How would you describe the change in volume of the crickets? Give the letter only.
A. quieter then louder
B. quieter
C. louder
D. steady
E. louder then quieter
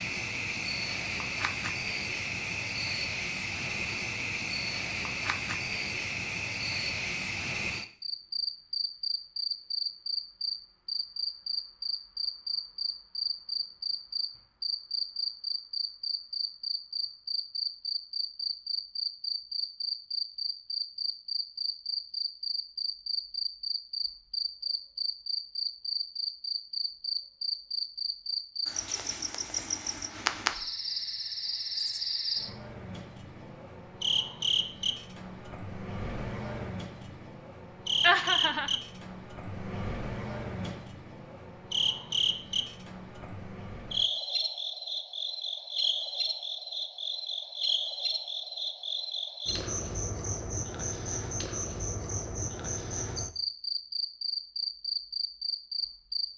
D.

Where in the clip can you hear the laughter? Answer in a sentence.
The laughter can be heard from 38.0 to 38.8 s.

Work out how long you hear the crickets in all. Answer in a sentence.
You can hear the crickets for 56 seconds altogether.